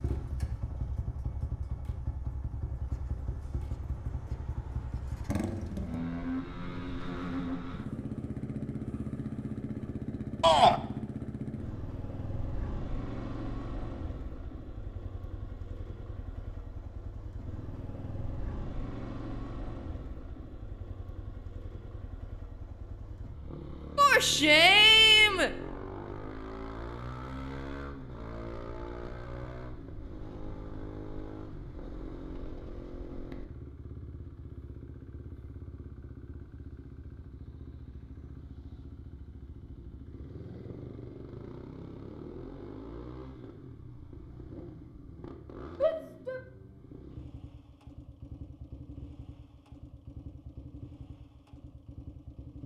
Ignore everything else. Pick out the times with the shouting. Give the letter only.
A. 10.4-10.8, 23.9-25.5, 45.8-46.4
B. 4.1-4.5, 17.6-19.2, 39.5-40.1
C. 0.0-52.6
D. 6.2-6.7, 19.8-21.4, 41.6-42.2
A.